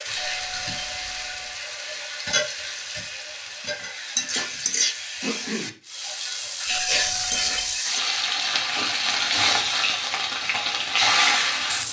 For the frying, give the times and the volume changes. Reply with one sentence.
You can hear the frying from 0.0 to 11.8 s, getting louder.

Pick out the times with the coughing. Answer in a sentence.
The coughing can be heard from 4.8 to 5.8 s.